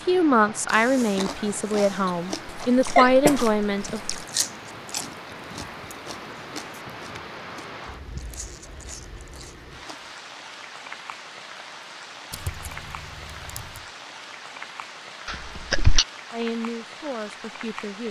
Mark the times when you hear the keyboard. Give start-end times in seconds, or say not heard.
12.3-13.9.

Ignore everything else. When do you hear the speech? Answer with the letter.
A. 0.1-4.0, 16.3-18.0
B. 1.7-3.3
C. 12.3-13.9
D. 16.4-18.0
A.